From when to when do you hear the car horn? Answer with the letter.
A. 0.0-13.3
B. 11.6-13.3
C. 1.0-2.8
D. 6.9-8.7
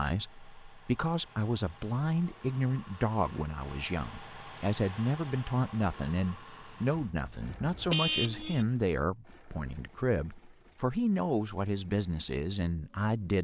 D.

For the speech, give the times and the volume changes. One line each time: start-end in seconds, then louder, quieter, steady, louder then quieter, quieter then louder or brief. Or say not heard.
0.0-13.3 steady.